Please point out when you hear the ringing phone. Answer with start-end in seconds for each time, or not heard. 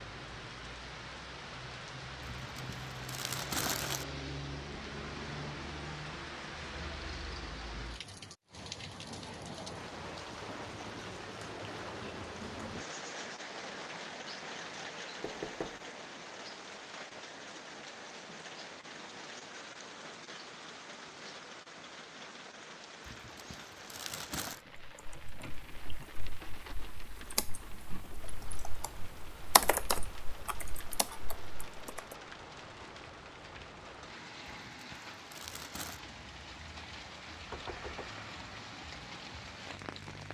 not heard.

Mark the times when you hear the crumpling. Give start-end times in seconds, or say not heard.
2.2-4.0, 23.1-24.6, 34.5-36.0.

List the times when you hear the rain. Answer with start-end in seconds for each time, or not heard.
0.0-40.2.